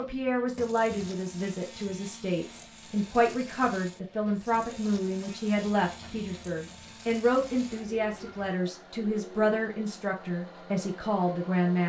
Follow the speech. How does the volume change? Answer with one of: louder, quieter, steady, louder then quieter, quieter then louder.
steady.